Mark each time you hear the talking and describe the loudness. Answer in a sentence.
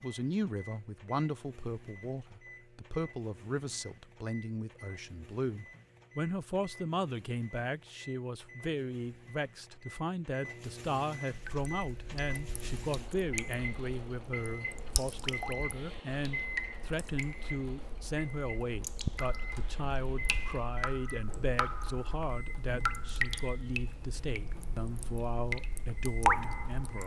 You can hear the talking from 0.0 to 27.0 s, at a steady volume.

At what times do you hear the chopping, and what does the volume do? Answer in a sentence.
You can't hear the chopping here.